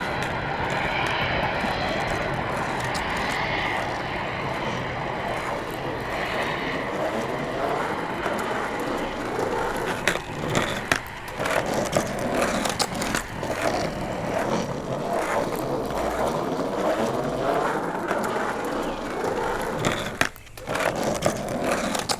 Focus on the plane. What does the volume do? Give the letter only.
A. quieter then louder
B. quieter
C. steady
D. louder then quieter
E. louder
B.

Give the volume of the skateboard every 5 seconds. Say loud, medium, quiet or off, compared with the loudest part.
medium, loud, loud, loud, loud.